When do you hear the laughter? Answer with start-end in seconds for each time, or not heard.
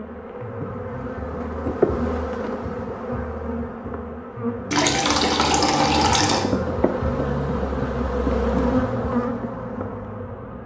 not heard.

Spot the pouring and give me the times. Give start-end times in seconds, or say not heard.
4.7-6.5.